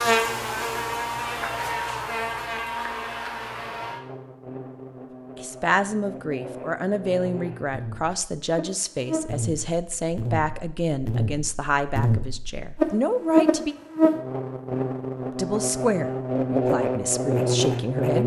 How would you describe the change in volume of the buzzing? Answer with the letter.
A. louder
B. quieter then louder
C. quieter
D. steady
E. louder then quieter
B.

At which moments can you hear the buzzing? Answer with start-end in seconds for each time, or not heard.
0.0-18.2.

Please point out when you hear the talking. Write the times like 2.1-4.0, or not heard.
5.3-13.8, 15.3-18.2.